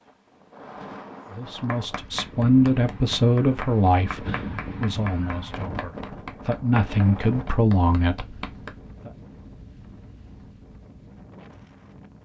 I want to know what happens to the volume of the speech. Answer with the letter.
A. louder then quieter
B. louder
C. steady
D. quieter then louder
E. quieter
D.